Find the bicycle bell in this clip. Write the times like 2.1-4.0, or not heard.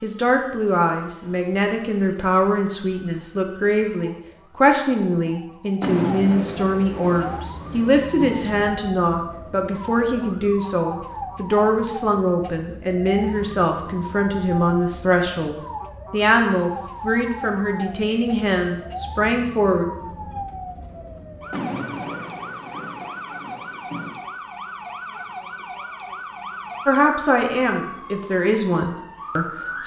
not heard.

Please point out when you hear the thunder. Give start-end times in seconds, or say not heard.
5.8-8.7, 21.5-24.2.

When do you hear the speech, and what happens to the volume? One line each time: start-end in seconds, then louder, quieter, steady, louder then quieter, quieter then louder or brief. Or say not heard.
0.0-19.9 steady
26.9-29.8 brief.